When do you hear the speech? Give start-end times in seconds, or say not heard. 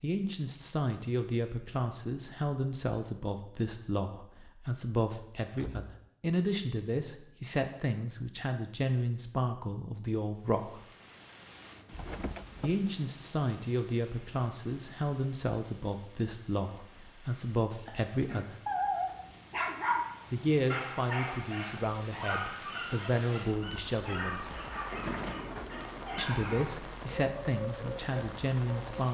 0.0-10.8, 12.6-18.6, 20.3-24.4, 26.1-29.0.